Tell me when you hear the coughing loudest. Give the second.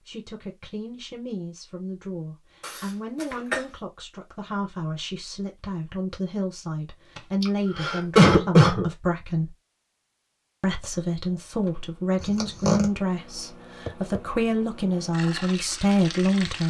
8 s.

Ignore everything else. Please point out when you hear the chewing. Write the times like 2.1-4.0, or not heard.
not heard.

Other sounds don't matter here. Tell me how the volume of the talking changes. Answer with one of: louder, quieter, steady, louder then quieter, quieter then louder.
louder.